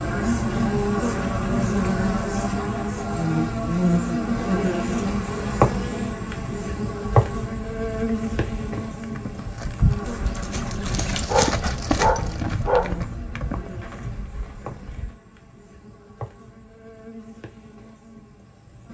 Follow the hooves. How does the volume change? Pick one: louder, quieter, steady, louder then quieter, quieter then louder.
louder then quieter.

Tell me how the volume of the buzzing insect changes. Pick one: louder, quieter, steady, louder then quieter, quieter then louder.
quieter.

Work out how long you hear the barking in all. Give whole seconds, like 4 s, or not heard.
2 s.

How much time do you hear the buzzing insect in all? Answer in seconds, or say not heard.
19 s.